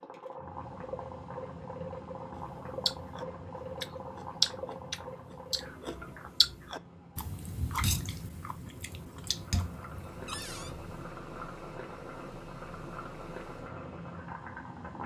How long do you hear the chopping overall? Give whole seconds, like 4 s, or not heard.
not heard.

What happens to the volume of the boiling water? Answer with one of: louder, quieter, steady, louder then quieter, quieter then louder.
quieter then louder.